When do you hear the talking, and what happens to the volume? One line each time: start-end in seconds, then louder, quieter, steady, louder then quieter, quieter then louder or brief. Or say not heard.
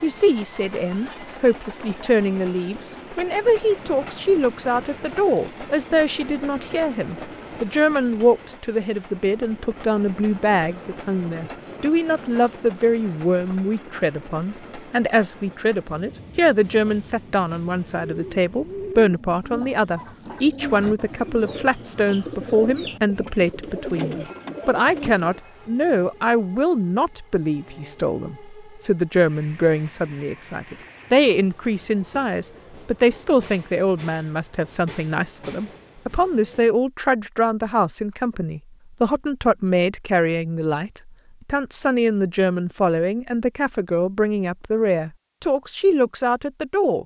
0.0-47.0 steady.